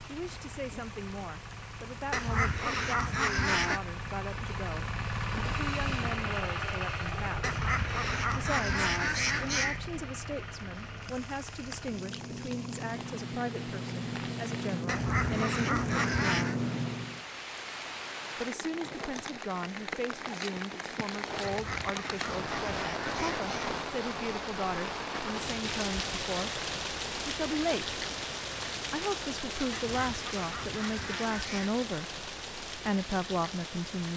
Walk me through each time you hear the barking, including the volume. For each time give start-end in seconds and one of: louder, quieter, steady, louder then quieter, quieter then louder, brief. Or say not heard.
not heard.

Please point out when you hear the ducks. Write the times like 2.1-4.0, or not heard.
2.1-3.8, 7.4-9.8, 14.8-16.6, 21.4-23.5, 29.7-31.8.